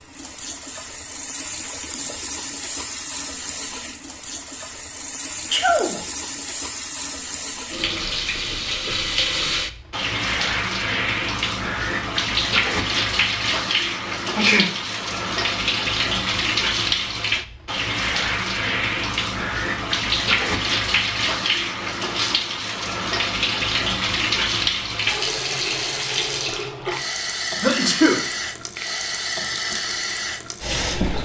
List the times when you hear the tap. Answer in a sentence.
The tap can be heard from 0.0 to 31.2 s.